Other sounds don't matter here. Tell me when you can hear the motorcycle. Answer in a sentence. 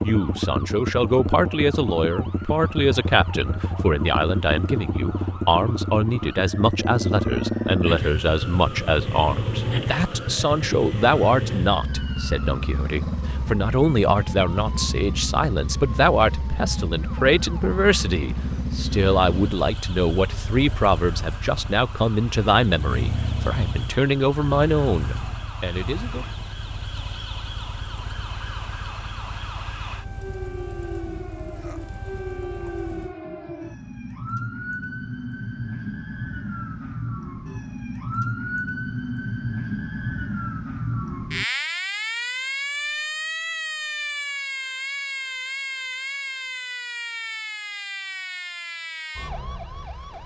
You can hear the motorcycle from 0.0 to 33.1 s.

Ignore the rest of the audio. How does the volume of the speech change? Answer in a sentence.
The volume of the speech stays about the same.